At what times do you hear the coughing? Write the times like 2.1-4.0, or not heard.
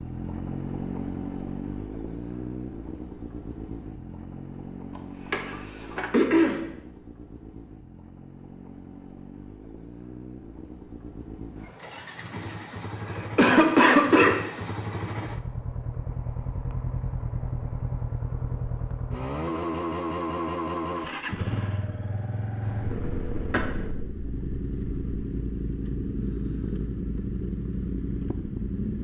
5.0-6.6, 12.7-14.4, 22.6-23.6.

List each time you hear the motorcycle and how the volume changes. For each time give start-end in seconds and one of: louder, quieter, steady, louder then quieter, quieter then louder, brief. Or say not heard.
0.0-28.9 quieter then louder.